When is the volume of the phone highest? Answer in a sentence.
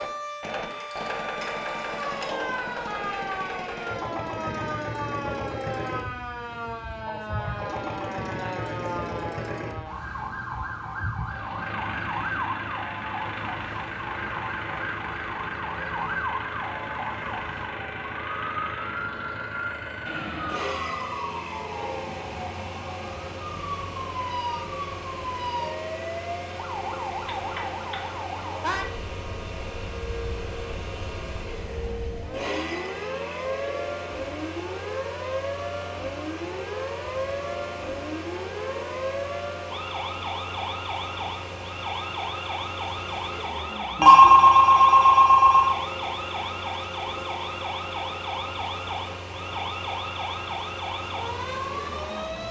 The volume of the phone peaks at 44 seconds.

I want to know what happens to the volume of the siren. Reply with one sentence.
The loudness of the siren stays about the same.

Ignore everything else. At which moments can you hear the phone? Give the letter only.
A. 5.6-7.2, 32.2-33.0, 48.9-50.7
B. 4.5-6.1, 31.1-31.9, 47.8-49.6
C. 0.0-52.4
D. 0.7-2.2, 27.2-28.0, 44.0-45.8
D.